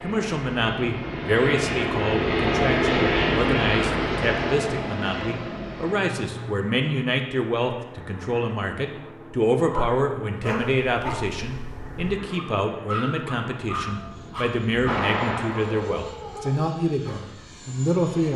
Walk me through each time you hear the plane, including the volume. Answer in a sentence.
The plane can be heard from 0.0 to 18.3 s, getting quieter.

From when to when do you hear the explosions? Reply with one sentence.
You can hear the explosions from 14.8 to 15.9 s.